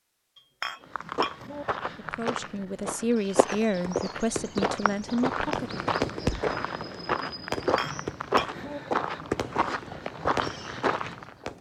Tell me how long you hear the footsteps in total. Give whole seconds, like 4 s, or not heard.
11 s.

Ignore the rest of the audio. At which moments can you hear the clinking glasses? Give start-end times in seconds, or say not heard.
0.3-1.6, 7.8-8.8.